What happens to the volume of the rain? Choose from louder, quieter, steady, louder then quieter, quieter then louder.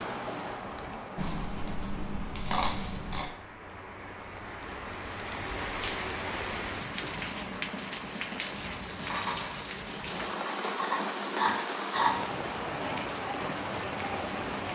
louder.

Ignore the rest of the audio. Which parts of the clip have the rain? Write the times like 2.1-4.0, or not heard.
0.0-14.7.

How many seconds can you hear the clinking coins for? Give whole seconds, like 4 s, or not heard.
2 s.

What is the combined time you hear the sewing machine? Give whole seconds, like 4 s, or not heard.
not heard.